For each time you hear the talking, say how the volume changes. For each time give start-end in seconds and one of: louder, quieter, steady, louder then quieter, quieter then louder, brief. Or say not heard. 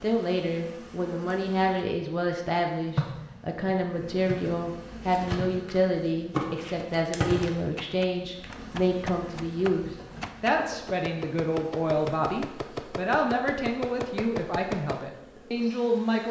0.0-16.2 steady.